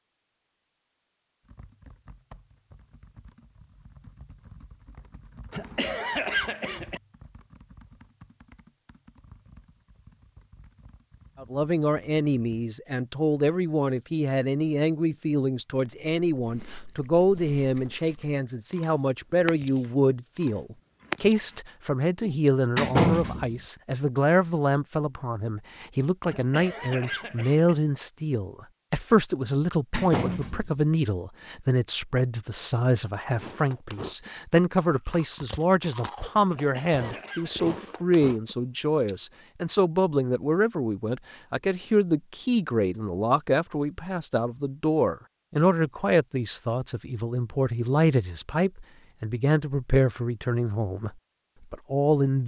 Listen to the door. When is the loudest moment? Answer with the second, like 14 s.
23 s.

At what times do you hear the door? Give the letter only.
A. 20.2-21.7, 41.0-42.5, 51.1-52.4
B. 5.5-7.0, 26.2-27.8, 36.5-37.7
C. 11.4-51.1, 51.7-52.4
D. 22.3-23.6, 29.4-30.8
D.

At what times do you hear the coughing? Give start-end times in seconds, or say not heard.
5.5-7.0, 26.2-27.8, 36.5-37.7.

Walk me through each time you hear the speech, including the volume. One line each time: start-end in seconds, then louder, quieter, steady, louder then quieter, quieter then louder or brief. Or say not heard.
11.4-51.1 steady
51.7-52.4 brief.